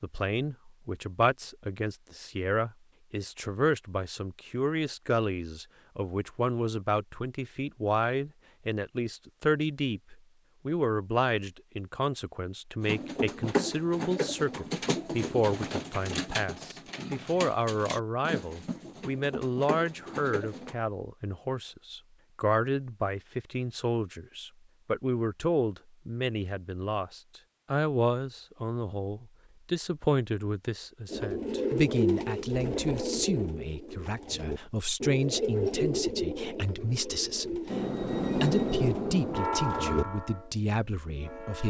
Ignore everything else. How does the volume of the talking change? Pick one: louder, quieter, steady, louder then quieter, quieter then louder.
steady.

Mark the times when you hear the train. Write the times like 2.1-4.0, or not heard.
37.6-41.6.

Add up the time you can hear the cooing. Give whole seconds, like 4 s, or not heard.
17 s.